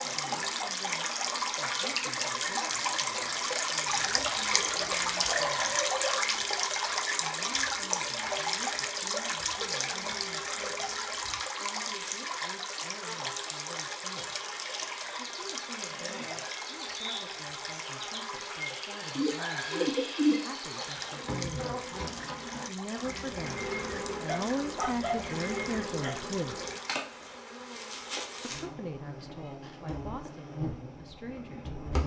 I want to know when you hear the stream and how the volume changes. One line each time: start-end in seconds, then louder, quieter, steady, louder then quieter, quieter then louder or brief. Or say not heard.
0.0-26.9 quieter.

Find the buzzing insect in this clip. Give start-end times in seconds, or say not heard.
0.0-32.0.